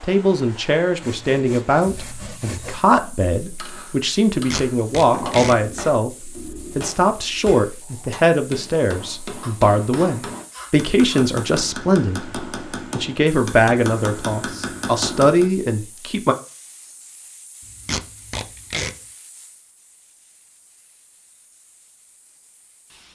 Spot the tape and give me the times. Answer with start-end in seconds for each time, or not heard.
4.5-5.5, 17.9-18.9.